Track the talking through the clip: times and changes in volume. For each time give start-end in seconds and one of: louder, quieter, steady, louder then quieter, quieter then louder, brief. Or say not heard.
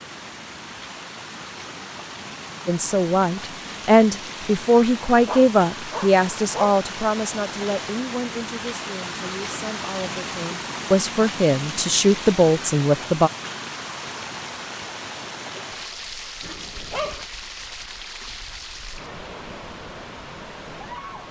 2.6-13.3 quieter then louder.